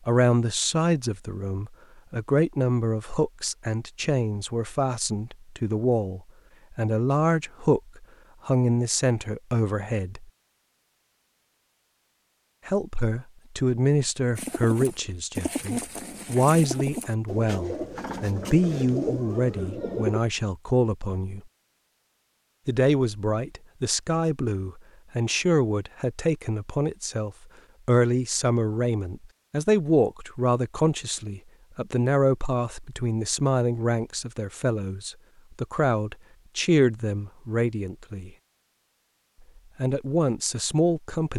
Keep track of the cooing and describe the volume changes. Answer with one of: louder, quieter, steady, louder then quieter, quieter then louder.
steady.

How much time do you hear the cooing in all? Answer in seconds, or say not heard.
6 s.